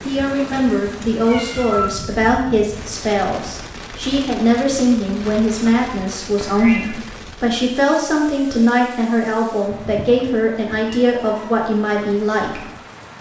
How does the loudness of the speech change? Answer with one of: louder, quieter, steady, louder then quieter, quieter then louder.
steady.